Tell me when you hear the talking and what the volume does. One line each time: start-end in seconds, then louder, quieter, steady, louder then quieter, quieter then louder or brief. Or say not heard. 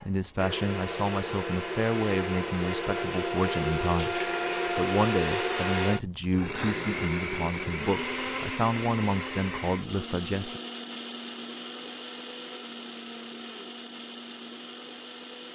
0.0-10.6 steady.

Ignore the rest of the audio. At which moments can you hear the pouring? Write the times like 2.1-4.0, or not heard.
4.0-4.8.